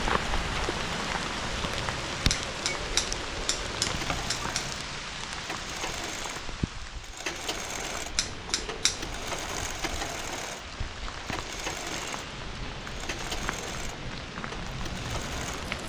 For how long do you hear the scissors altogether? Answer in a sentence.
The scissors can be heard for 4 seconds in total.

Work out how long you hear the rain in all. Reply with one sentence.
You can hear the rain for 16 seconds altogether.